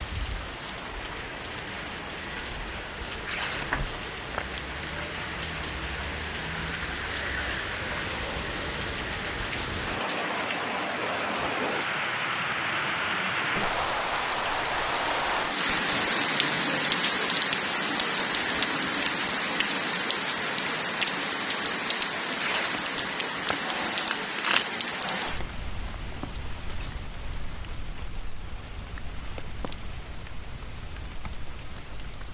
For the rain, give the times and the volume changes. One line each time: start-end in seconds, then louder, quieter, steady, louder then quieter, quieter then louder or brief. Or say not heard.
0.0-32.2 louder then quieter.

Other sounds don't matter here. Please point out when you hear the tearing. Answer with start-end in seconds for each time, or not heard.
3.2-4.8, 22.4-24.7.